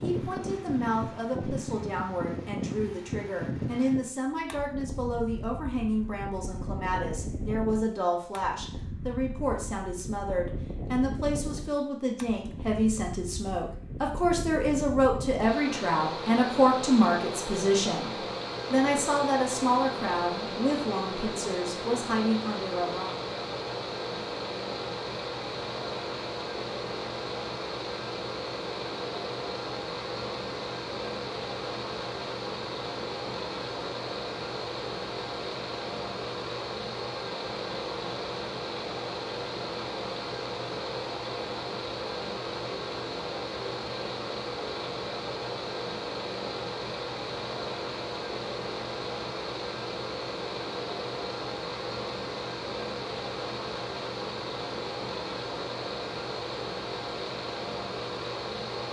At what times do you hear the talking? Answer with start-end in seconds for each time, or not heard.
0.0-23.1.